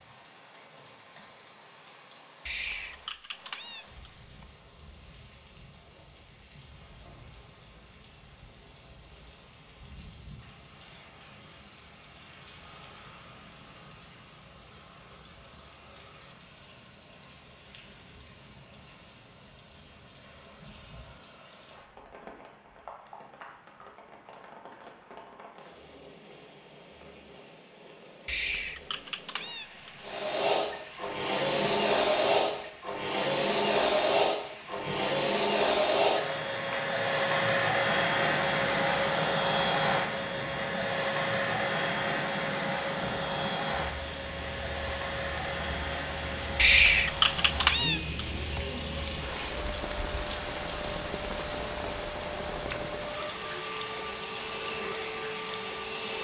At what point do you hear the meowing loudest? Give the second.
47 s.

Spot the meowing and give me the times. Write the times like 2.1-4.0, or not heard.
2.5-4.5, 28.2-29.9, 46.5-48.6.